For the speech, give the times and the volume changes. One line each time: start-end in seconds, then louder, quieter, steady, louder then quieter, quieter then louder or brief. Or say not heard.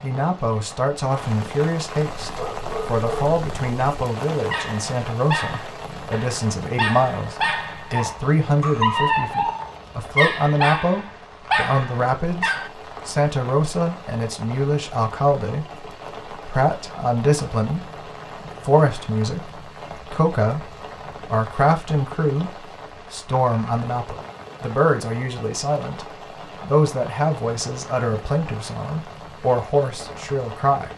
0.0-17.9 steady
18.6-30.9 steady.